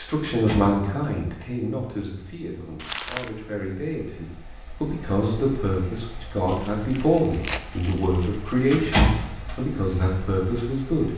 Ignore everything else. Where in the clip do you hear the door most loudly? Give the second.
9 s.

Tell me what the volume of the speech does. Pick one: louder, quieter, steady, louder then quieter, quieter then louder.
quieter then louder.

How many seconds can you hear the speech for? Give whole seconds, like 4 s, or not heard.
11 s.